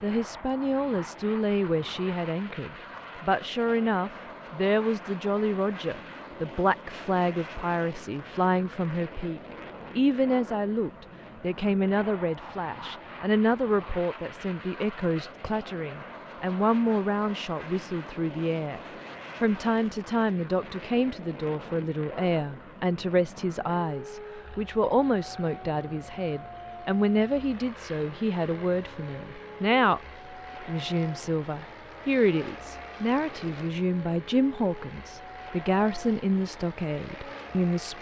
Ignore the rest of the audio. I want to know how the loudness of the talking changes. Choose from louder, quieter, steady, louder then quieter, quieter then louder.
steady.